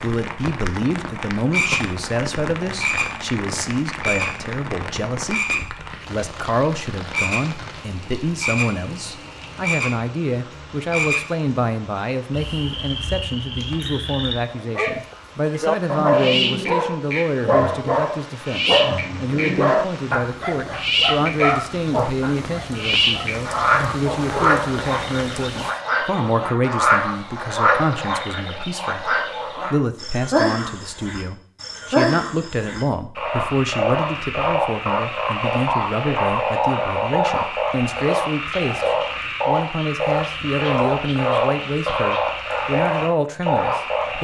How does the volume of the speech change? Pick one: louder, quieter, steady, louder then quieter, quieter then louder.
steady.